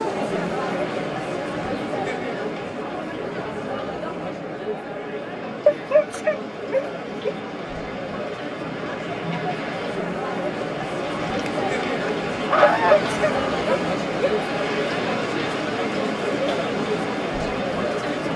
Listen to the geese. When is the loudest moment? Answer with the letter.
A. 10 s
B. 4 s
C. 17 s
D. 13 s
D.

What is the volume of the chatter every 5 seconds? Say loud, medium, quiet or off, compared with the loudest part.
loud, medium, loud, loud.